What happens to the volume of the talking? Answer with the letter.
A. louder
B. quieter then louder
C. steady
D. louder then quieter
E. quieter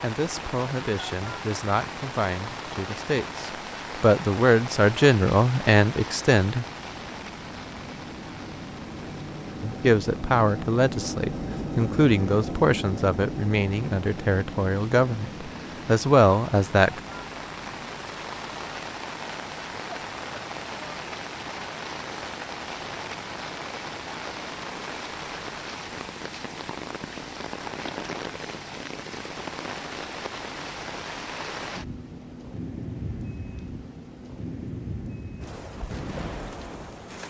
A.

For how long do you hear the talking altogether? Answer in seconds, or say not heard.
14 s.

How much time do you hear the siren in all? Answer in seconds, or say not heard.
not heard.